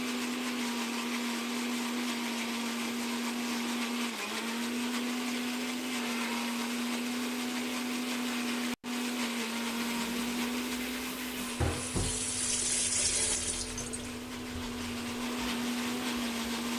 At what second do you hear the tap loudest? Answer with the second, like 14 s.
13 s.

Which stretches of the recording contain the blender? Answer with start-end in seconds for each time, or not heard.
0.0-16.7.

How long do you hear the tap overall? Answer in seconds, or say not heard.
7 s.